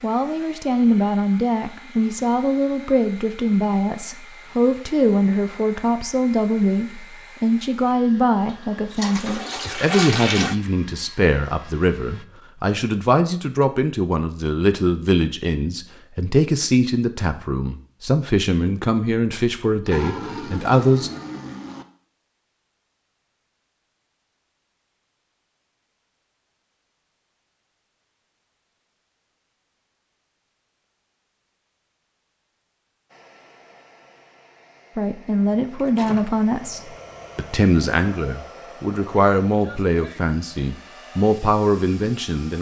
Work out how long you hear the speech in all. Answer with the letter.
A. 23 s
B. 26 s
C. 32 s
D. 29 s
D.